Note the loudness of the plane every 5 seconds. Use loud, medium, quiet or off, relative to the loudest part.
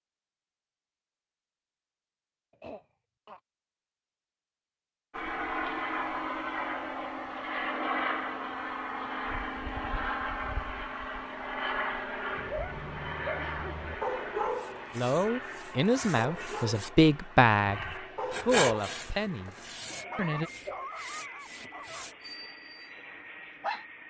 off, loud, loud, medium, quiet.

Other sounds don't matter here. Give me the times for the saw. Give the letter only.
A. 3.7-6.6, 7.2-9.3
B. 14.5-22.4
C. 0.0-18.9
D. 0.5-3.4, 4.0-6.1
B.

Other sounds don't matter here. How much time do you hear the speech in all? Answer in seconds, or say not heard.
5 s.